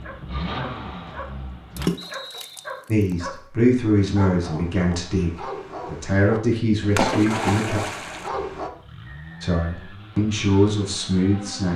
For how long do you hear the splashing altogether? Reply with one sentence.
You can hear the splashing for 2 seconds altogether.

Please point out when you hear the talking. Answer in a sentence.
You can hear the talking from 2.9 to 7.8 s and from 9.4 to 11.7 s.